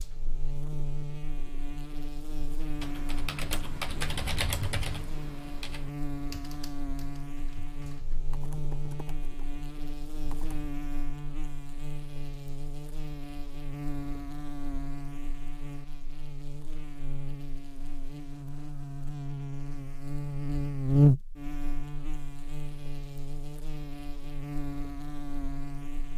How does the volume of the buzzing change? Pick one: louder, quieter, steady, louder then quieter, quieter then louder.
louder.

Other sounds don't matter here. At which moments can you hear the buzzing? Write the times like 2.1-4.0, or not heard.
0.0-26.1.